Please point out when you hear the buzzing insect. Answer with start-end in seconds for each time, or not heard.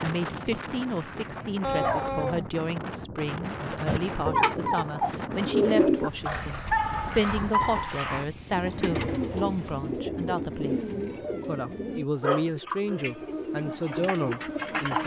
12.9-15.0.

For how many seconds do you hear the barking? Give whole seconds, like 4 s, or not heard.
4 s.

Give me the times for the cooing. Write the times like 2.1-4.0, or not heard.
3.9-6.1, 8.5-15.0.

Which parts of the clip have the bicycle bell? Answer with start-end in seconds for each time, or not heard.
not heard.